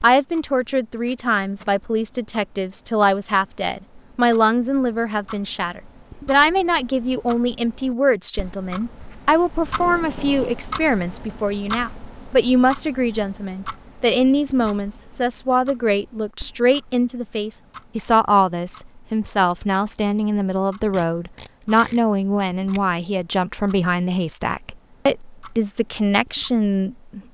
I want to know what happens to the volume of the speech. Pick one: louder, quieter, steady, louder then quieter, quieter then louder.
steady.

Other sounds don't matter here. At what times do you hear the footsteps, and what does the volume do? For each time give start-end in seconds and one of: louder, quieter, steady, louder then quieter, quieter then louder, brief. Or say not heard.
not heard.